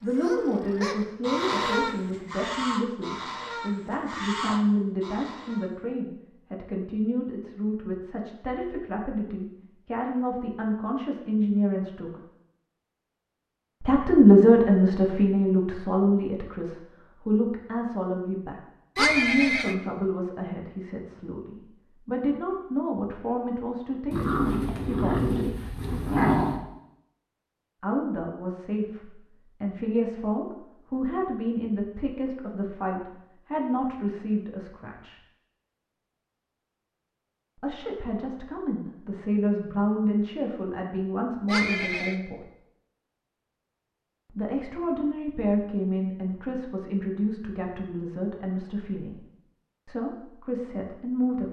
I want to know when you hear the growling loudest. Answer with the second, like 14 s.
26 s.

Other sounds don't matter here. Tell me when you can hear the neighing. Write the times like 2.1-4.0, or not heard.
18.9-19.8, 41.5-42.1.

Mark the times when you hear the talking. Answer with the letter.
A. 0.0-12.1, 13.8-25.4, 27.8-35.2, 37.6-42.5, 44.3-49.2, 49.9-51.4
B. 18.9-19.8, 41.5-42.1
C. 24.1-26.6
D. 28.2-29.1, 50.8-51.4
A.